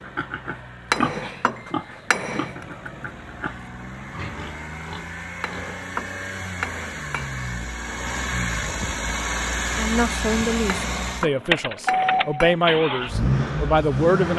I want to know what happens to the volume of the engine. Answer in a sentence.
The loudness of the engine goes up.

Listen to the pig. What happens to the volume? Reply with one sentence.
The loudness of the pig goes down.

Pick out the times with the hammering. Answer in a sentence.
The hammering can be heard from 0.9 to 2.6 s, from 5.4 to 7.3 s and from 10.7 to 12.6 s.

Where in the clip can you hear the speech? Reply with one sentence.
The speech can be heard from 9.8 to 14.3 s.